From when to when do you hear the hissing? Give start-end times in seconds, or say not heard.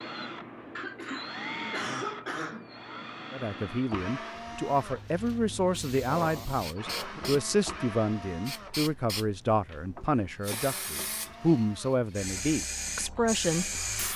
4.8-14.1.